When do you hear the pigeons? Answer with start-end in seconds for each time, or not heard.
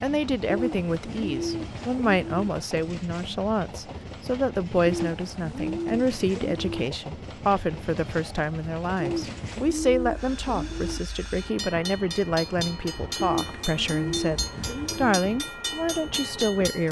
0.5-2.5, 4.8-6.8, 8.9-11.0, 13.2-15.2.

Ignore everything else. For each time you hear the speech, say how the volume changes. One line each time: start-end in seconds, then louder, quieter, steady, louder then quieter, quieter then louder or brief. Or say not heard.
0.0-16.8 steady.